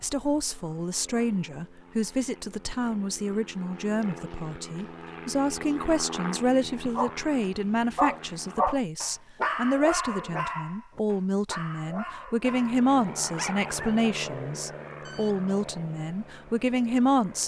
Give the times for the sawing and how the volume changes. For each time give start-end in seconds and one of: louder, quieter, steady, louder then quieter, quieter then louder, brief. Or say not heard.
not heard.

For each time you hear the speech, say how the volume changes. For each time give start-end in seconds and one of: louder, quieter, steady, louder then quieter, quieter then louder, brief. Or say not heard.
0.0-17.4 steady.